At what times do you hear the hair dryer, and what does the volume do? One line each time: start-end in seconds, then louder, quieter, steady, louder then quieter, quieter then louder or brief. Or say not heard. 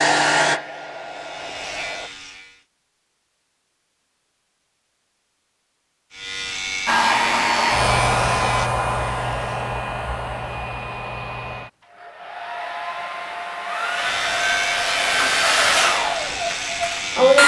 0.0-2.1 brief
6.8-17.4 quieter then louder.